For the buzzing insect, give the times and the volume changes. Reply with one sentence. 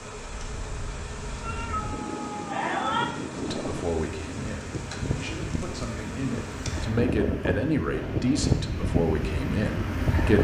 The buzzing insect can be heard from 0.0 to 6.9 s, at a steady volume.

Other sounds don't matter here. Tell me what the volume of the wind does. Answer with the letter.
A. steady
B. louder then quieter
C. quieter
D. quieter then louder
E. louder
E.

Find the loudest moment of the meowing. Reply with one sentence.
The volume of the meowing peaks at 3 seconds.